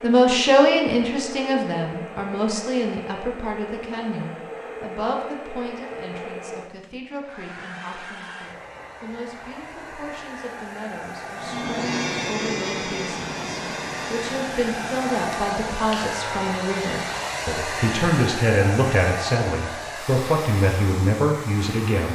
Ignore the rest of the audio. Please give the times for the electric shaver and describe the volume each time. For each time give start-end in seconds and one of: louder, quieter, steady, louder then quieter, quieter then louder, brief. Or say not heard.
11.3-16.6 quieter.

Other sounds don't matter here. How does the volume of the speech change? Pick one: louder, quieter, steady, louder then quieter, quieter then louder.
quieter then louder.